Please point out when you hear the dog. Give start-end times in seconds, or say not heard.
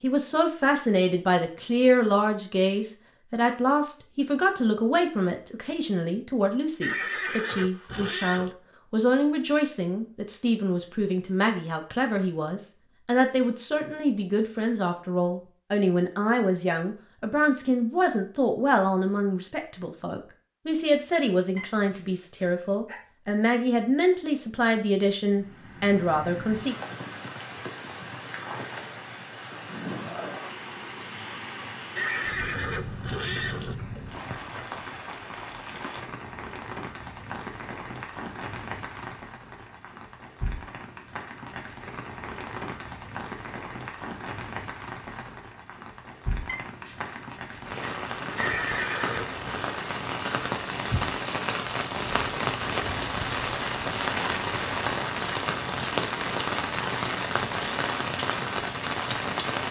21.6-23.0, 46.5-47.9.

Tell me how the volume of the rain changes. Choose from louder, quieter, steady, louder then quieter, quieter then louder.
louder.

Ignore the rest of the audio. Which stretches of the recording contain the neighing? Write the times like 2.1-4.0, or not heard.
6.8-8.6, 31.9-33.8, 48.4-49.7.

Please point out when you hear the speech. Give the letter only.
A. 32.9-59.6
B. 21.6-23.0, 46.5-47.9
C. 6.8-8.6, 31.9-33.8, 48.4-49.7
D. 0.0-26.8
D.